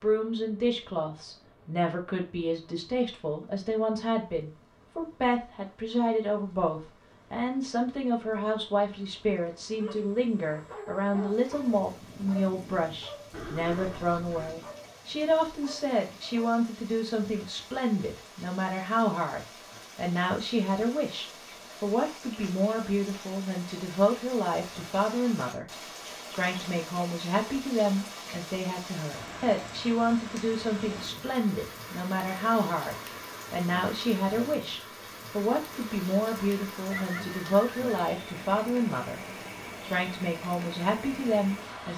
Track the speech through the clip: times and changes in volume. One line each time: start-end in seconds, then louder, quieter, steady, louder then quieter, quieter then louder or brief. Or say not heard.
0.0-25.6 steady
26.3-39.2 steady
39.8-41.9 brief.